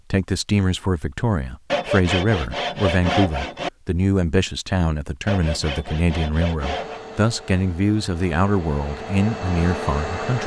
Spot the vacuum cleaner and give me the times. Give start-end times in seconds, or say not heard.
6.6-10.4.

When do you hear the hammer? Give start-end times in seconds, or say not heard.
not heard.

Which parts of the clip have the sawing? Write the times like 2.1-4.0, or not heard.
1.7-3.7, 5.2-7.0.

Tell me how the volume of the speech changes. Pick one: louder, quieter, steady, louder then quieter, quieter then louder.
steady.